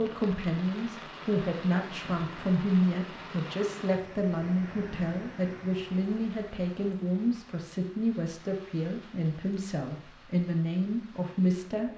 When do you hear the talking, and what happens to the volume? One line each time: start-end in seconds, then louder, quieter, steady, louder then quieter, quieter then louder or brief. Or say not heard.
0.0-11.9 steady.